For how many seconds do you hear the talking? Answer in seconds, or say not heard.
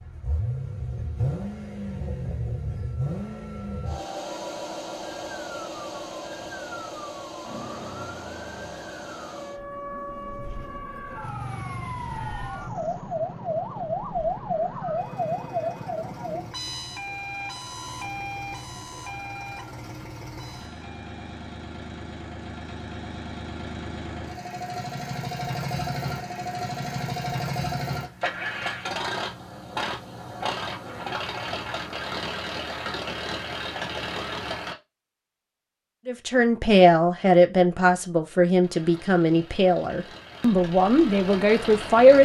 6 s.